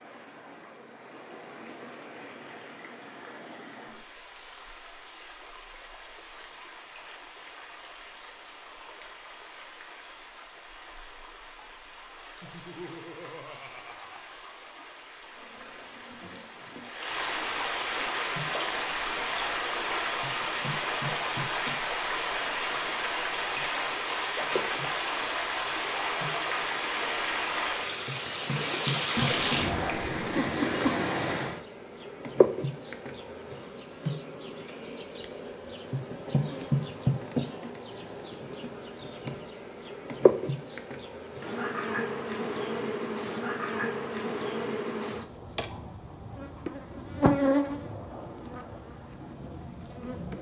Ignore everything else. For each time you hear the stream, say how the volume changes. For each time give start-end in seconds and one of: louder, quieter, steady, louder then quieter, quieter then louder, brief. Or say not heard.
0.0-31.6 louder.